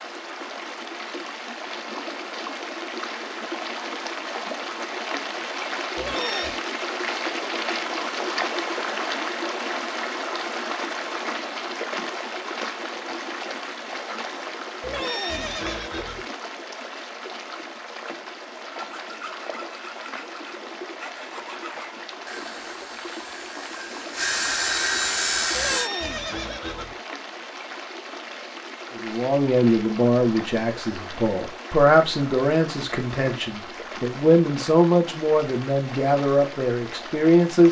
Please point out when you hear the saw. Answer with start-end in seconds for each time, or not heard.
18.7-25.9.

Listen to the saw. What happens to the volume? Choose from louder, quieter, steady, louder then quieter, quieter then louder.
louder.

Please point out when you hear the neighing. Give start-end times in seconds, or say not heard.
6.0-6.6, 14.8-16.2, 25.5-26.9.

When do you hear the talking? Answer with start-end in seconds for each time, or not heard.
28.9-37.6.